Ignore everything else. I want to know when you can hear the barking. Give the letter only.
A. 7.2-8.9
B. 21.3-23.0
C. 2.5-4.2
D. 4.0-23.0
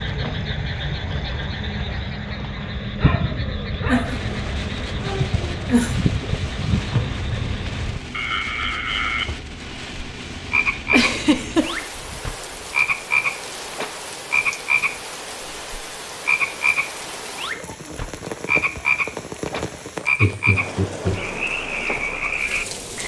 C.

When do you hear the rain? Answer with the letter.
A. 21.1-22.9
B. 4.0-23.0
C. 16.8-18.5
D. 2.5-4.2
B.